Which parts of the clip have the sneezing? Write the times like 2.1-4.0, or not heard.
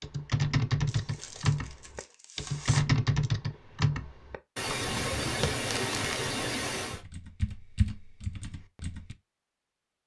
4.5-7.0.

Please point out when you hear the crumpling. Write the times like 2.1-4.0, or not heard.
0.8-2.9, 5.7-6.2.